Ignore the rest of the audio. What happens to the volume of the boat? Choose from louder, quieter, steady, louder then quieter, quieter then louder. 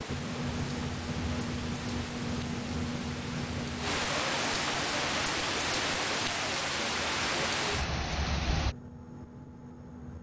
quieter.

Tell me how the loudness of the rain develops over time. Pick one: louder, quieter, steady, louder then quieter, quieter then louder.
louder.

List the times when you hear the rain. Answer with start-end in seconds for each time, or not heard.
0.0-8.8.